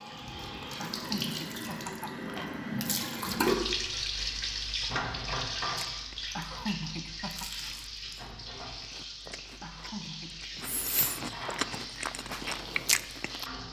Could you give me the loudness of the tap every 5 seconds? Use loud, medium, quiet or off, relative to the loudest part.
loud, medium, medium.